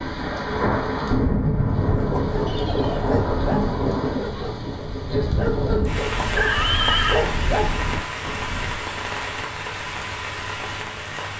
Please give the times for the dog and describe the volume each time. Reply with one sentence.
The dog can be heard from 1.8 to 8.8 s, at a steady volume.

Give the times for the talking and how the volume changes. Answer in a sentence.
You can't hear the talking here.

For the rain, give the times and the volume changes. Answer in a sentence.
You can hear the rain from 0.0 to 11.3 s, getting quieter.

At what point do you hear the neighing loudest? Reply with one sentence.
The loudest moment of the neighing is at 7 seconds.